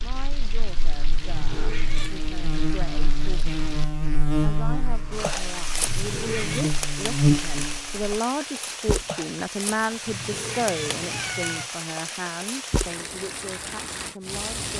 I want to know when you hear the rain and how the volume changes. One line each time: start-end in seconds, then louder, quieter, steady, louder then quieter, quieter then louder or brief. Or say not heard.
0.0-14.7 louder.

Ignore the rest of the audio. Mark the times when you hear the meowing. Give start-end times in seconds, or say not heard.
1.2-2.2, 5.8-6.7, 10.1-11.7.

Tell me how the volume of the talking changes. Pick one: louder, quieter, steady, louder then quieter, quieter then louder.
louder then quieter.